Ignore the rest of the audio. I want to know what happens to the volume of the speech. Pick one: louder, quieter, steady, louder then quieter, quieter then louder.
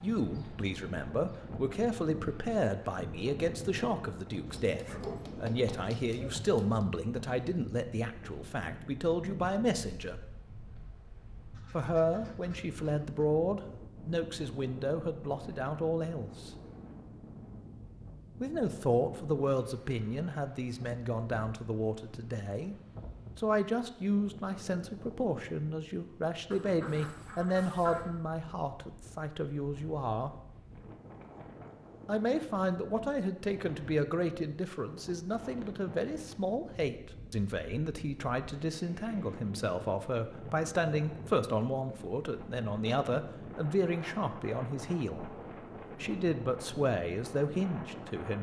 steady.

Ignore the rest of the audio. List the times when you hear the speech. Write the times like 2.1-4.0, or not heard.
0.0-10.2, 11.7-16.5, 18.4-22.8, 23.4-30.3, 32.0-48.3.